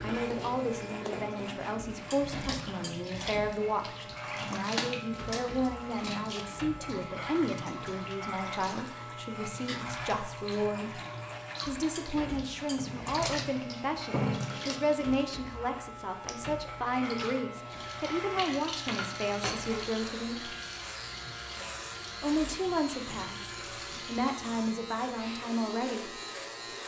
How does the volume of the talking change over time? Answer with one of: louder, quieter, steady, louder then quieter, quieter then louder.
steady.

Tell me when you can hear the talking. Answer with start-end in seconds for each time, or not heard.
0.0-11.0, 11.7-20.5, 22.2-26.2.